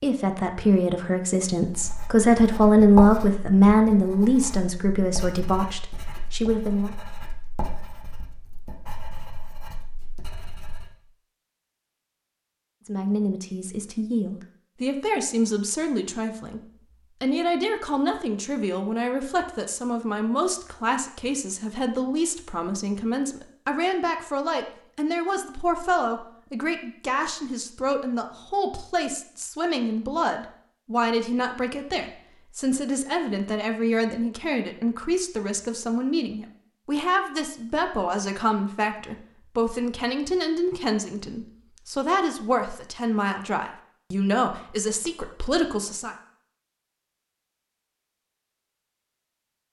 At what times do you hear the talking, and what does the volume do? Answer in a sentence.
The talking can be heard from 0.0 to 7.0 s, getting louder then quieter; and from 12.8 to 46.1 s, at a steady volume.